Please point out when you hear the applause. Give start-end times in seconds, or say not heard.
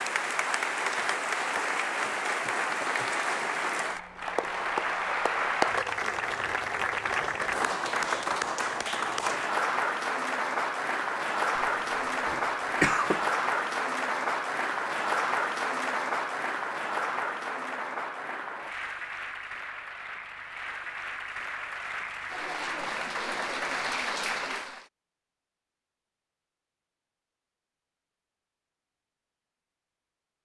0.0-24.9.